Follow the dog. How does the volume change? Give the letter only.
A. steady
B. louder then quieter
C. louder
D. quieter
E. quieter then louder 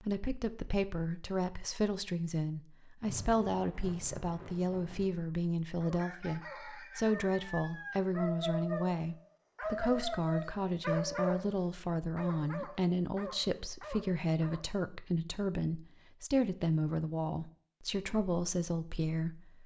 B.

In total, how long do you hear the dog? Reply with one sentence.
The dog can be heard for 9 seconds in total.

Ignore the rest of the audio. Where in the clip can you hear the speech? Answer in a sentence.
You can hear the speech from 0.0 to 19.6 s.